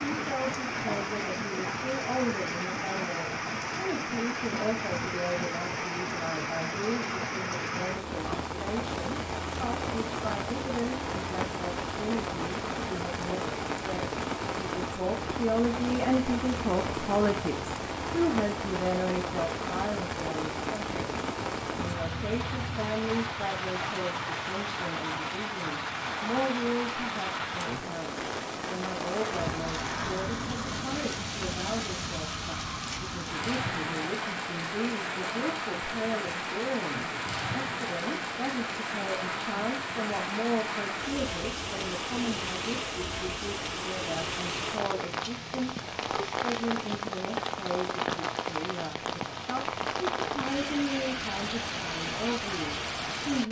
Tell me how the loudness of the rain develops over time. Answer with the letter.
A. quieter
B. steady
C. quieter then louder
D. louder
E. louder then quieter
B.